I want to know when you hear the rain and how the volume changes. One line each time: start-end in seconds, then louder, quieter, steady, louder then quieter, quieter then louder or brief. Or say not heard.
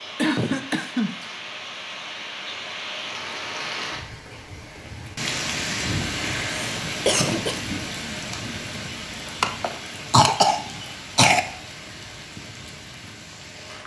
0.0-13.8 louder then quieter.